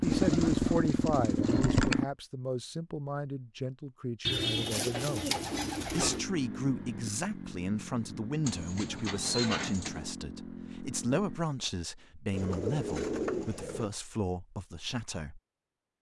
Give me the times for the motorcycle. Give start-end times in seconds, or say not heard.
0.0-2.0, 6.0-11.4.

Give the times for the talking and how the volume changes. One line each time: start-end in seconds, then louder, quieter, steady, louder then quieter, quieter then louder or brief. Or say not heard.
0.0-15.4 steady.